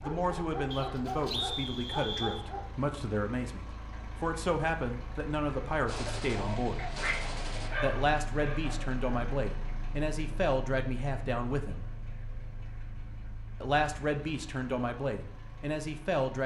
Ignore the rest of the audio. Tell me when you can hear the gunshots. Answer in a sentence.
You can hear the gunshots from 5.8 to 7.7 s.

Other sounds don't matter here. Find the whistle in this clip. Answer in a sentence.
You can hear the whistle from 0.7 to 2.5 s.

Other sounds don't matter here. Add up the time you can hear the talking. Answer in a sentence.
The talking can be heard for 14 seconds in total.